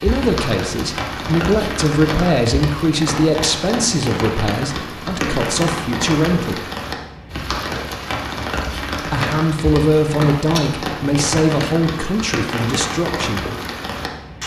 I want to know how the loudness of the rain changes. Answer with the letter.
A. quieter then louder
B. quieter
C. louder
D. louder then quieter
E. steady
E.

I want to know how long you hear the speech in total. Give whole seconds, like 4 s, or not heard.
11 s.